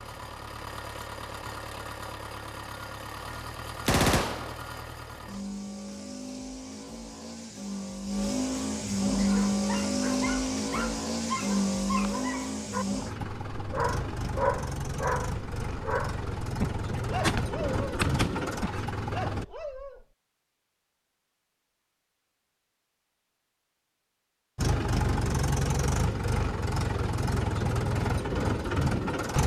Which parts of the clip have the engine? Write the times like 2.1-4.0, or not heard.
0.0-19.4, 24.6-29.4.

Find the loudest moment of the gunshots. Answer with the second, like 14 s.
4 s.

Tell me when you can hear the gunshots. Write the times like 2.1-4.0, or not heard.
3.9-4.5, 16.9-18.5.